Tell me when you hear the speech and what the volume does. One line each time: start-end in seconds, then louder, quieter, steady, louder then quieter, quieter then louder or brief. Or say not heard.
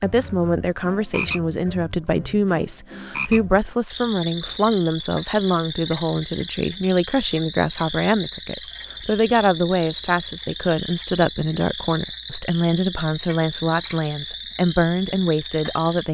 0.0-16.0 steady.